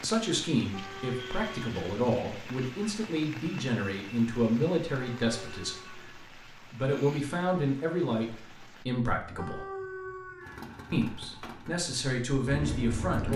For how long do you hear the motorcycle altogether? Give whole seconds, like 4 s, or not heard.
3 s.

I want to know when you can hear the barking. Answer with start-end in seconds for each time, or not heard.
0.7-1.8, 5.2-6.2, 9.3-10.7.